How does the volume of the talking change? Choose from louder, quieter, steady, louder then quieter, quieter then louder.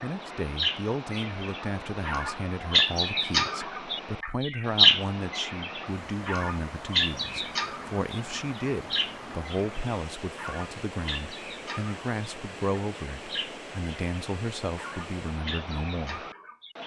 steady.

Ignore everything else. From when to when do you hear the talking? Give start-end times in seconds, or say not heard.
0.0-16.2.